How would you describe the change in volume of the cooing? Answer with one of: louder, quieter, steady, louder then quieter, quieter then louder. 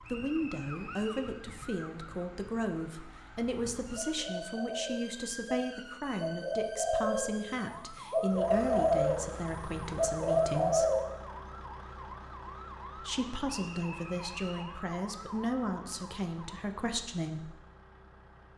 louder.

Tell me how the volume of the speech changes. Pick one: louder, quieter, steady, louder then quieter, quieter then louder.
steady.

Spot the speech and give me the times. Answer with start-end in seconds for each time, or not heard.
0.1-10.8, 13.0-17.6.